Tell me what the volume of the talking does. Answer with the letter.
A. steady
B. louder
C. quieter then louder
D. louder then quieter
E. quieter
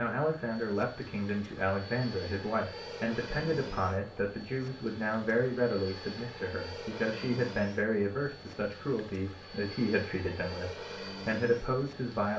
A.